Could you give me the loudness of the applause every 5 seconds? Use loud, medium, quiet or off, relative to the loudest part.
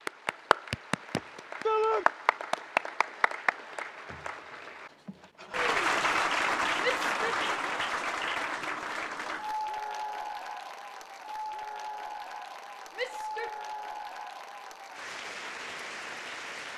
loud, loud, medium, medium.